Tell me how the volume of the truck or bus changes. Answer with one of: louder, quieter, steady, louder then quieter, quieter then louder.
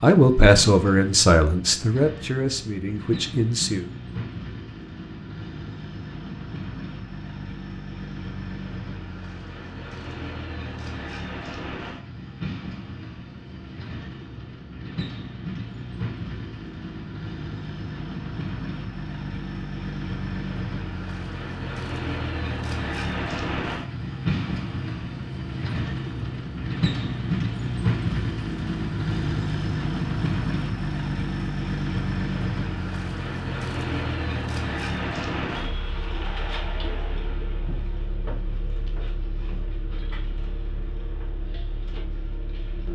louder then quieter.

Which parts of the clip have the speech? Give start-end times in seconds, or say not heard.
0.0-3.9.